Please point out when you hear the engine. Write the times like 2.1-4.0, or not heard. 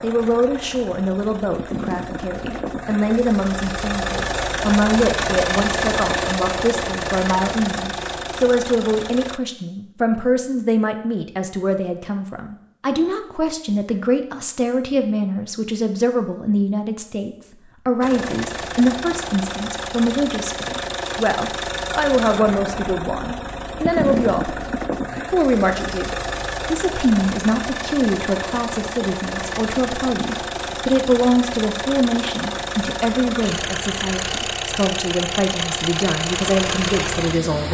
0.0-9.4, 18.0-37.6.